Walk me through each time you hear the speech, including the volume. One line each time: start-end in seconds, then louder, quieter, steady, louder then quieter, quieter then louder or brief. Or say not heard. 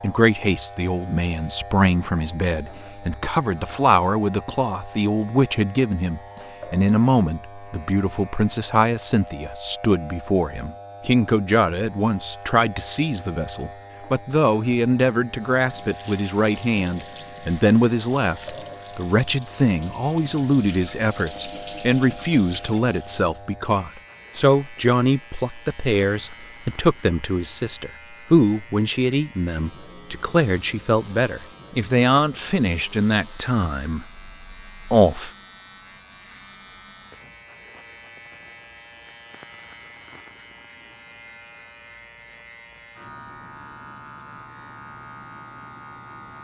0.0-35.3 steady.